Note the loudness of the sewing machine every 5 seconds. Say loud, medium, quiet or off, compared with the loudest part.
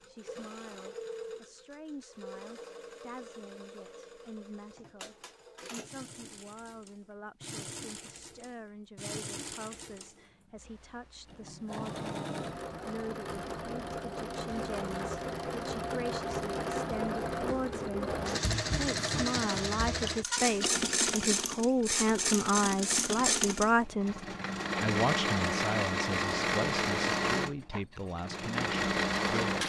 quiet, quiet, medium, loud, loud, loud.